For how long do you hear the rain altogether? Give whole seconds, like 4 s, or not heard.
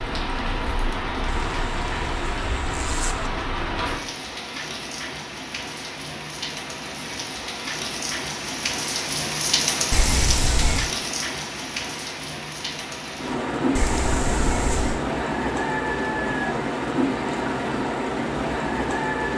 19 s.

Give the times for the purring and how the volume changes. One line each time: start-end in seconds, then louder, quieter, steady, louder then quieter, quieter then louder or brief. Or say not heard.
not heard.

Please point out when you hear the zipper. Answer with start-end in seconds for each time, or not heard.
1.4-3.3, 9.9-10.9, 13.8-15.1.